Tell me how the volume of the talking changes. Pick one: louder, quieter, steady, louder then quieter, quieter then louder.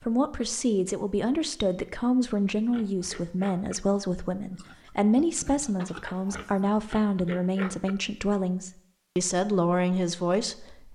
steady.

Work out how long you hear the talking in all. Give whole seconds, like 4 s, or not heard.
11 s.